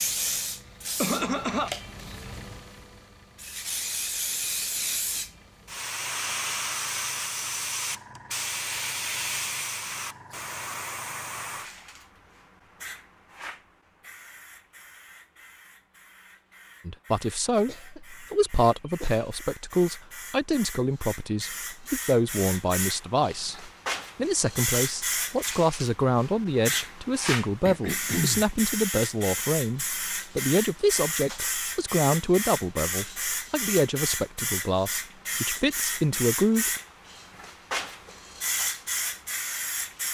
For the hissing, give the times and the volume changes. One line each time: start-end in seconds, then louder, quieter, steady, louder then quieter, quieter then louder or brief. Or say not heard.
0.0-40.0 quieter then louder.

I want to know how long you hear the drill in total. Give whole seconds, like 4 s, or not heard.
not heard.